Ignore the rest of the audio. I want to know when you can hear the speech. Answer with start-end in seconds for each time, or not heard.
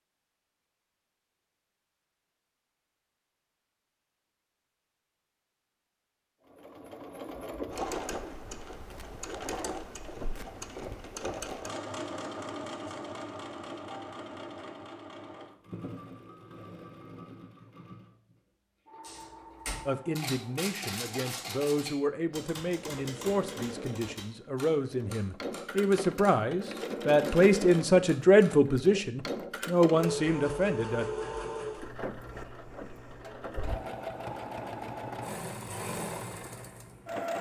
19.9-31.1.